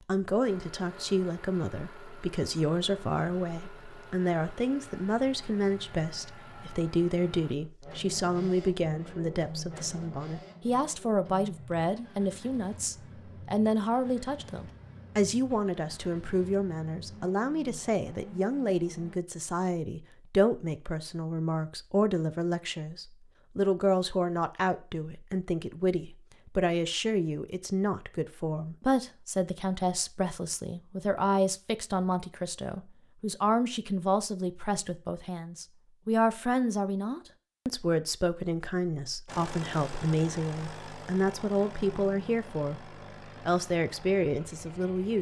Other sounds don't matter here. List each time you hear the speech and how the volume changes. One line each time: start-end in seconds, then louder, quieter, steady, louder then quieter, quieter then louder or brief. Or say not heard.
0.1-45.1 steady.